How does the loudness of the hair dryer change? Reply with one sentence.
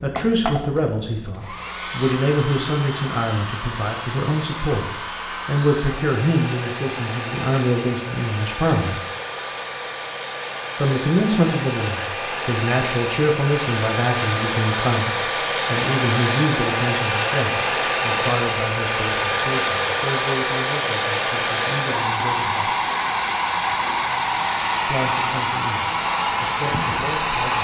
The volume of the hair dryer goes up.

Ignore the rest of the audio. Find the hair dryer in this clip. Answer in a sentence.
You can hear the hair dryer from 0.0 to 27.5 s.